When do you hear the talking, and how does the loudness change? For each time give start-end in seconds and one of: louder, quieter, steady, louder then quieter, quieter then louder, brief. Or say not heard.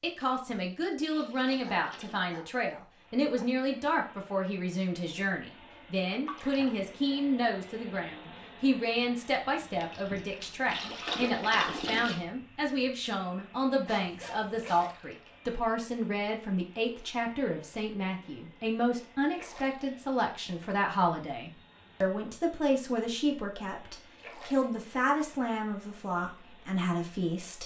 0.0-27.6 steady.